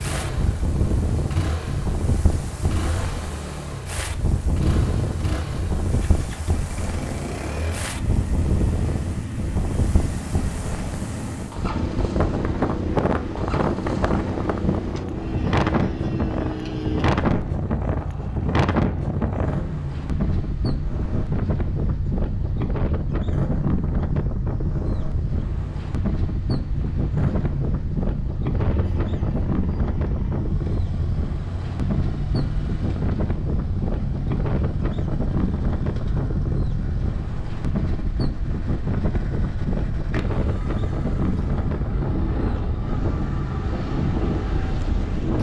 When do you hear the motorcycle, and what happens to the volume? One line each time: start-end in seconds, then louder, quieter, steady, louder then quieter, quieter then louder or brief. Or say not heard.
0.0-45.3 steady.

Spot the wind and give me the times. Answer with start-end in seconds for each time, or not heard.
0.0-45.3.